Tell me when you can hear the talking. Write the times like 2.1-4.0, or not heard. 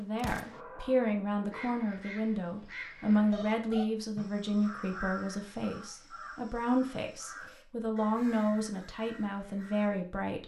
0.0-10.4.